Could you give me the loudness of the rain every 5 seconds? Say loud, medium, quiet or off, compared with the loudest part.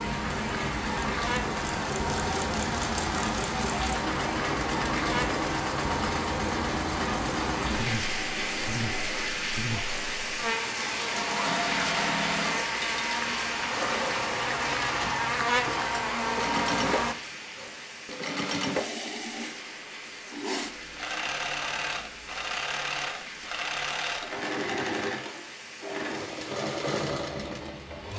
loud, loud, loud, medium, medium, medium.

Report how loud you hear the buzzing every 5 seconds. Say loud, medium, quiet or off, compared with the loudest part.
medium, medium, medium, loud, off, off.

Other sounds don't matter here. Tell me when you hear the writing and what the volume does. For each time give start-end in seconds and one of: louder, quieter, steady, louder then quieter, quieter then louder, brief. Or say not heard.
not heard.